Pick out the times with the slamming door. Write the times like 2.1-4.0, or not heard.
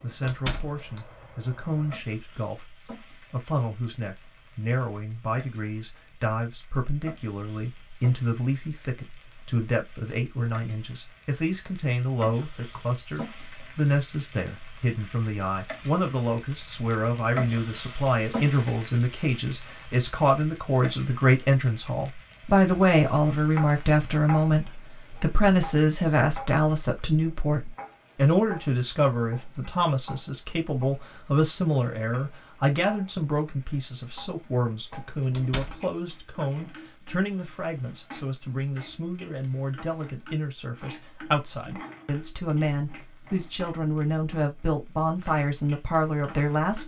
0.2-0.8, 35.3-35.8.